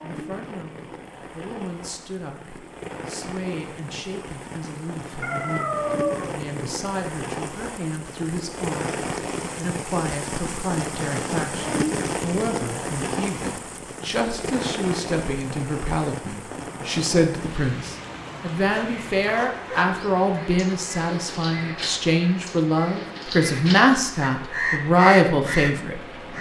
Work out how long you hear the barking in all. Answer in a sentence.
You can hear the barking for 2 seconds altogether.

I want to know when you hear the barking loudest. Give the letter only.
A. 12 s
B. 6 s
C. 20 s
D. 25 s
B.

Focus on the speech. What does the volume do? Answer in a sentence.
The loudness of the speech goes up.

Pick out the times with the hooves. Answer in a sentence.
You can't hear the hooves here.